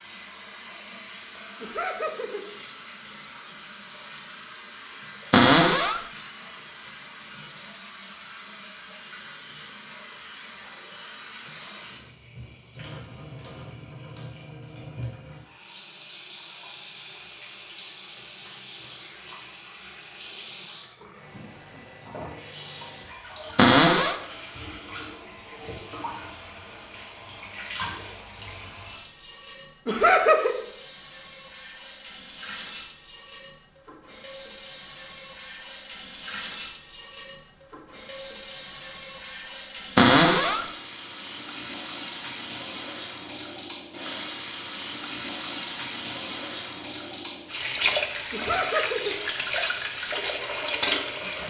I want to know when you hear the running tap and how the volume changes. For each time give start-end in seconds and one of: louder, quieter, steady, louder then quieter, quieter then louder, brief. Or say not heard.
0.0-51.4 louder.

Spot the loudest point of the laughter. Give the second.
30 s.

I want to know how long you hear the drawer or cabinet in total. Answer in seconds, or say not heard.
2 s.